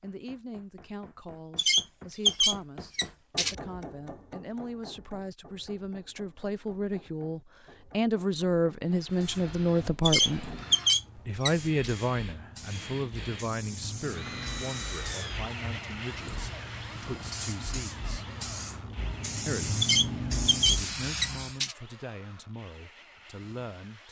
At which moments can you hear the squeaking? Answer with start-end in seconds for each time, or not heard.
1.6-3.5, 10.1-11.9, 19.8-21.8.